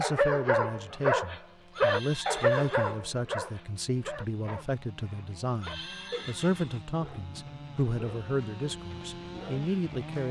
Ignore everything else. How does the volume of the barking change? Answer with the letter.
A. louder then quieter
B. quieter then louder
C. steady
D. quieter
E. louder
D.